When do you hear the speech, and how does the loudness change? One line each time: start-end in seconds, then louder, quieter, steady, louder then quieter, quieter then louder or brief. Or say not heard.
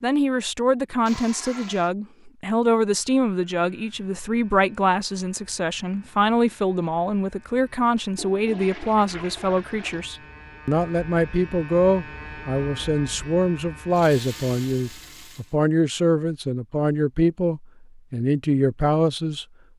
0.0-19.4 steady.